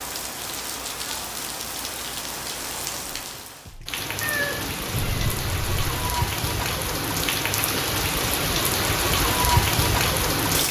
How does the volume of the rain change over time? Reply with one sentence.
The loudness of the rain goes up.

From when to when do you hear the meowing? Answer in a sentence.
You can hear the meowing from 4.2 to 6.0 s.